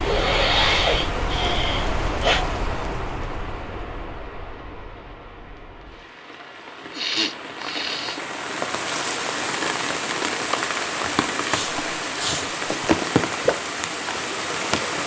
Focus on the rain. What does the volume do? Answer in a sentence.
The loudness of the rain goes down, then up.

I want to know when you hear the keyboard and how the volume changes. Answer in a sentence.
The keyboard can't be heard in this clip.